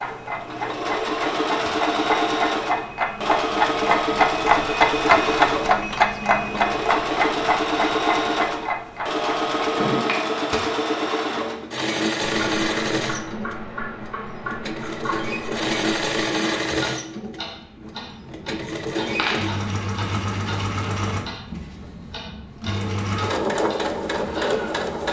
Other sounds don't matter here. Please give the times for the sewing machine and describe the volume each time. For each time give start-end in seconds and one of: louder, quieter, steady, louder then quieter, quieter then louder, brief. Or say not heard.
0.0-25.0 steady.